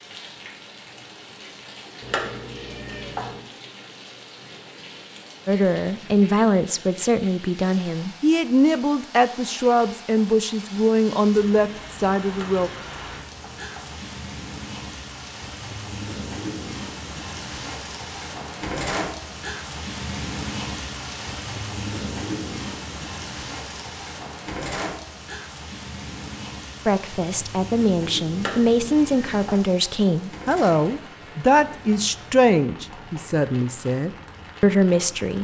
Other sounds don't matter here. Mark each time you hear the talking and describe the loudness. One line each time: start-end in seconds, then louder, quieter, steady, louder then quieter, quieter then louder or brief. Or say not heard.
5.5-12.7 steady
26.9-35.3 steady.